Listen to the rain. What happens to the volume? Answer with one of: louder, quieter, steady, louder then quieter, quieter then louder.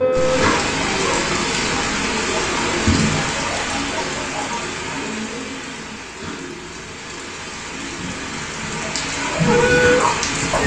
quieter then louder.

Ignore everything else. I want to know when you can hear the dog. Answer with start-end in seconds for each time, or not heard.
0.0-4.7, 8.8-10.6.